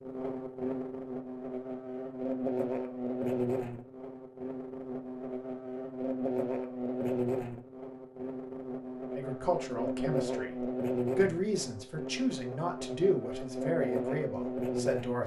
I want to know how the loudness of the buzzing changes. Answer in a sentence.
The volume of the buzzing stays about the same.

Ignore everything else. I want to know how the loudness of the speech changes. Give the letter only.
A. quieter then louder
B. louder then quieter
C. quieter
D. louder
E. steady
B.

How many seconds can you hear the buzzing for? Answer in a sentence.
The buzzing can be heard for 15 seconds in total.